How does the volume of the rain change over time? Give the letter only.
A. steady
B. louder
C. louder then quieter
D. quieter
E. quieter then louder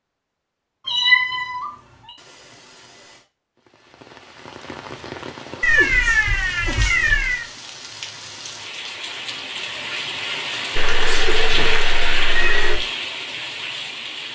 B.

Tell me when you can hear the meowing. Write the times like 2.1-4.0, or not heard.
0.8-2.1, 5.6-7.5, 10.8-12.8.